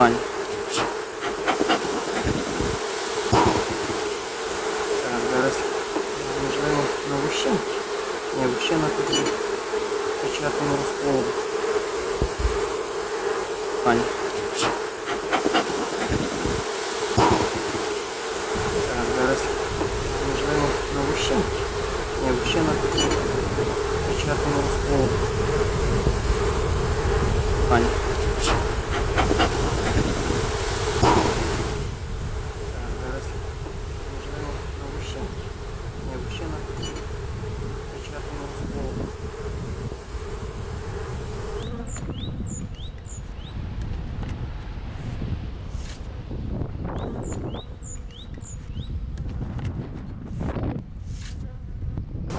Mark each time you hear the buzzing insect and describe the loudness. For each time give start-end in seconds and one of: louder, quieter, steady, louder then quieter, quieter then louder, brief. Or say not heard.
0.0-52.3 quieter.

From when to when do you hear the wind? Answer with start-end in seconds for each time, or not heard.
18.5-52.3.